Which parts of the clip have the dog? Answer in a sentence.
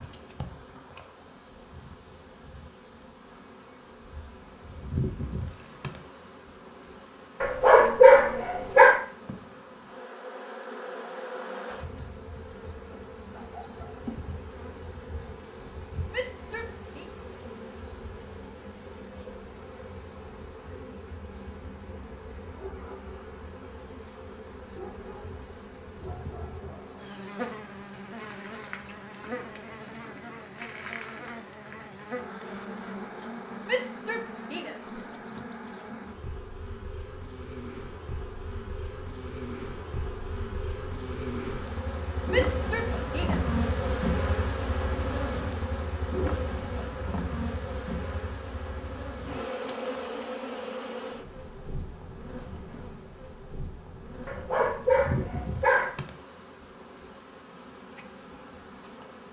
You can hear the dog from 7.4 to 9.0 s and from 54.2 to 56.0 s.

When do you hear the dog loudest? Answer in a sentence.
The loudest moment of the dog is at 8 seconds.